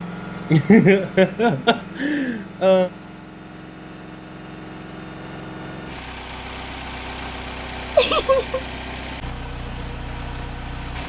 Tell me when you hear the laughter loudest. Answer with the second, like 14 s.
1 s.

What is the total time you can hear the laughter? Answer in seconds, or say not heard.
3 s.